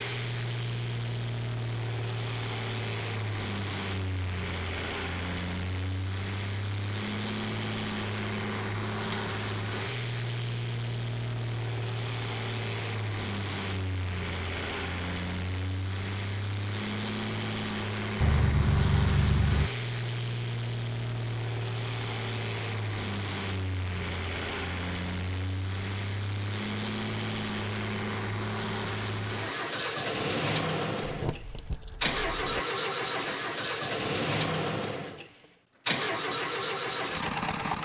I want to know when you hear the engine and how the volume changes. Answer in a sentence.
You can hear the engine from 0.0 to 37.7 s, at a steady volume.